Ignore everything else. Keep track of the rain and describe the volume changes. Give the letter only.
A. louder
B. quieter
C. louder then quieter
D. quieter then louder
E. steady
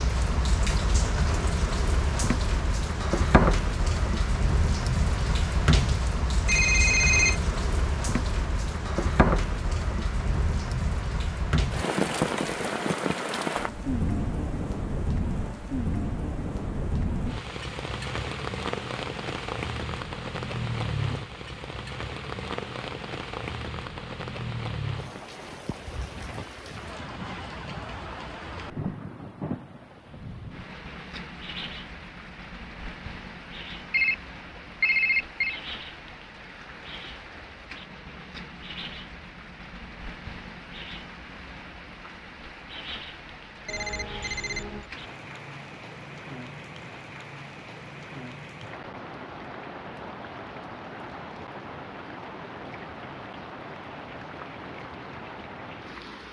B.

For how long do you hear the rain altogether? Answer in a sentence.
You can hear the rain for 56 seconds altogether.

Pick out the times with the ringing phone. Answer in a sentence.
You can hear the ringing phone from 6.5 to 7.4 s, from 33.9 to 35.6 s and from 43.6 to 44.9 s.